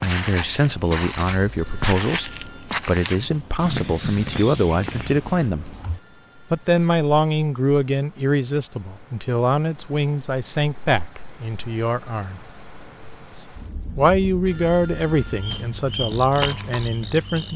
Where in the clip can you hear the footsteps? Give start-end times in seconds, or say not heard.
0.0-5.2.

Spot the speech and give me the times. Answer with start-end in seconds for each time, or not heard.
0.0-5.8, 6.5-12.4, 13.9-17.5.